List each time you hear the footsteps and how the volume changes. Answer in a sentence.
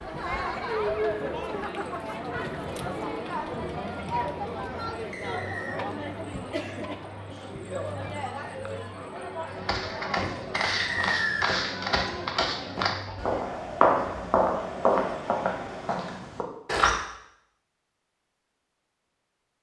You can hear the footsteps from 9.4 to 16.9 s, getting louder then quieter.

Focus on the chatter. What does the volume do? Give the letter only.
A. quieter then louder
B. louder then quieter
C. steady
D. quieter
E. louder
D.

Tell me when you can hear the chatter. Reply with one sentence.
You can hear the chatter from 0.0 to 16.1 s.